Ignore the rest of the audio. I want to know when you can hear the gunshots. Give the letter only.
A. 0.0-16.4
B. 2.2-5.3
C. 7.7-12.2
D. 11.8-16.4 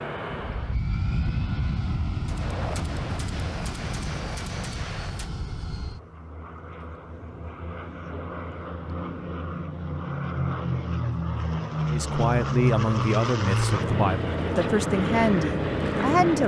B.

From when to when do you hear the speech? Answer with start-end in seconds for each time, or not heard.
11.8-16.4.